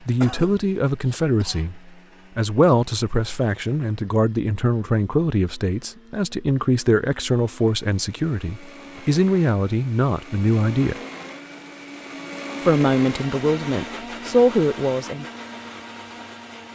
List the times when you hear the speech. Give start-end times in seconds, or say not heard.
0.1-10.9, 12.6-15.2.